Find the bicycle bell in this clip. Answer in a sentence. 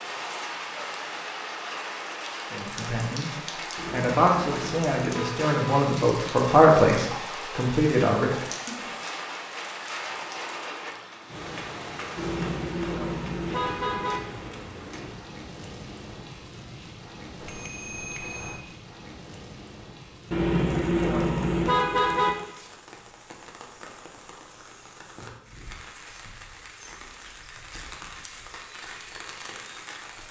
You can hear the bicycle bell from 17.4 to 18.6 s.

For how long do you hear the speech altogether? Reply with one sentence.
The speech can be heard for 6 seconds in total.